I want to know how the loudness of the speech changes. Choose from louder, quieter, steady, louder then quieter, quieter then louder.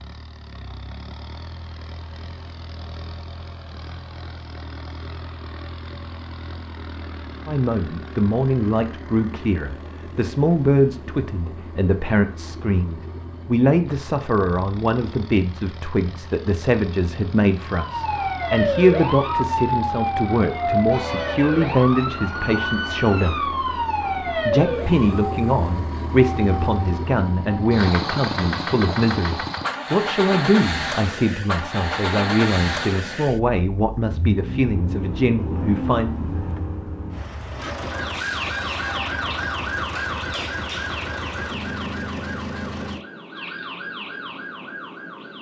steady.